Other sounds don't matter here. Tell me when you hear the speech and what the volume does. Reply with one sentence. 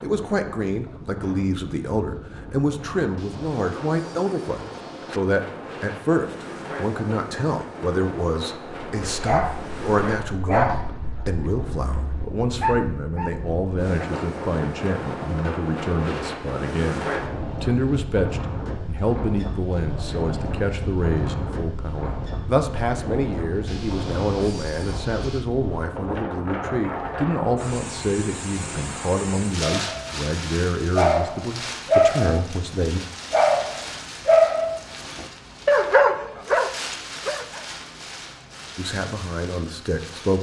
You can hear the speech from 0.0 to 33.0 s, at a steady volume; and briefly from 38.8 to 40.3 s.